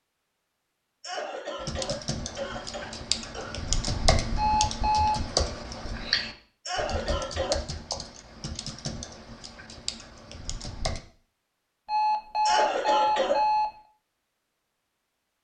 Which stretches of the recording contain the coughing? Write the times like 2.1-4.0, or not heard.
1.0-3.5, 6.7-7.6, 12.4-13.4.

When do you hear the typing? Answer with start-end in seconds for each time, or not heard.
1.6-11.0.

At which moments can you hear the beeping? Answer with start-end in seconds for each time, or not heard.
4.3-5.2, 11.8-13.7.